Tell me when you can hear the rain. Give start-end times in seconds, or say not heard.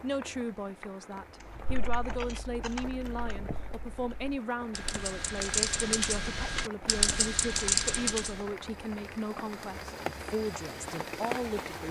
0.0-11.8.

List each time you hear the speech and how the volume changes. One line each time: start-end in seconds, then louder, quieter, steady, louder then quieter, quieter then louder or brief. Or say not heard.
0.0-11.8 steady.